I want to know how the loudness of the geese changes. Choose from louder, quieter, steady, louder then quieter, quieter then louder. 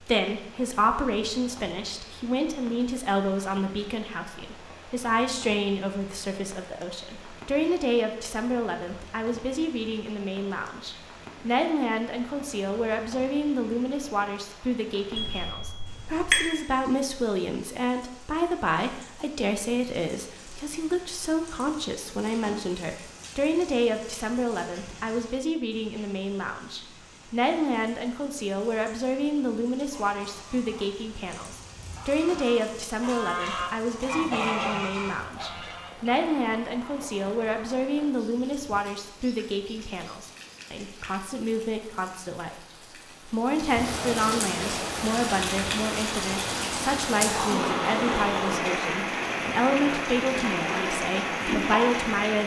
louder then quieter.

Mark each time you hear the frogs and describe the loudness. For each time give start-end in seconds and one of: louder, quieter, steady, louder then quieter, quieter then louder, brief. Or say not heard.
not heard.